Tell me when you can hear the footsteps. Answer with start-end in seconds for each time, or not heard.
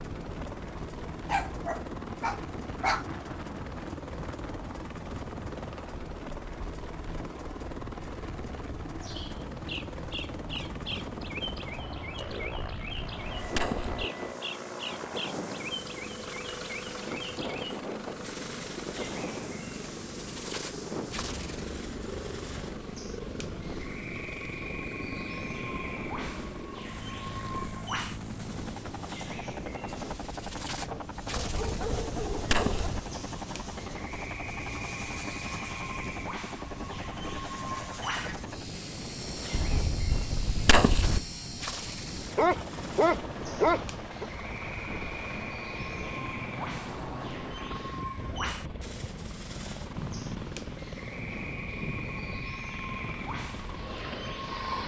not heard.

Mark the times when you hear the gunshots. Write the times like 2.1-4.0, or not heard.
12.4-14.1, 31.4-33.0, 39.5-41.2.